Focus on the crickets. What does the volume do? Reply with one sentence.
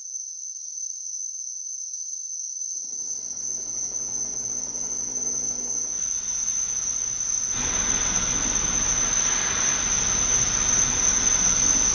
The loudness of the crickets goes up.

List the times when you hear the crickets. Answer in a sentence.
The crickets can be heard from 0.0 to 11.9 s.